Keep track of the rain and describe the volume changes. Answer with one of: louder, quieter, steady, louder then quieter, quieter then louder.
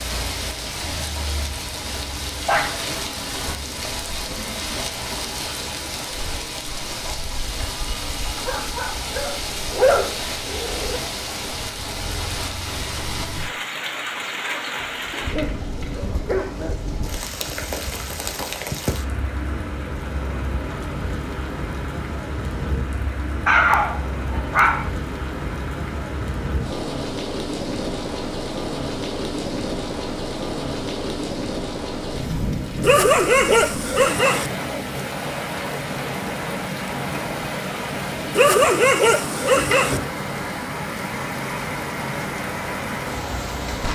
steady.